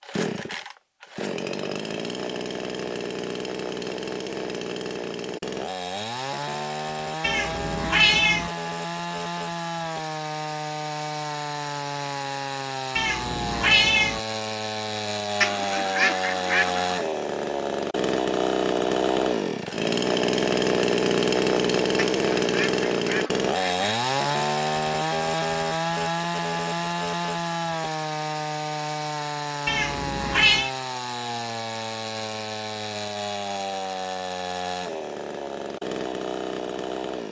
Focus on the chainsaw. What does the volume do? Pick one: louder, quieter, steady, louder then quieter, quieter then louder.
louder then quieter.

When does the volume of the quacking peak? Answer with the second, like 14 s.
16 s.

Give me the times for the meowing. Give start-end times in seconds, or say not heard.
7.2-8.5, 12.9-14.2, 29.6-30.7.